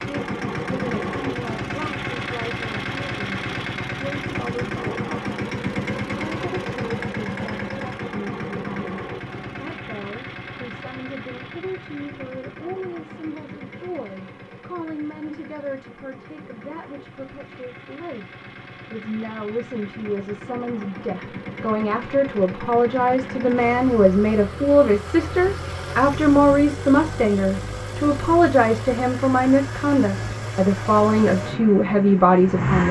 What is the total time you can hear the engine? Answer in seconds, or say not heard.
33 s.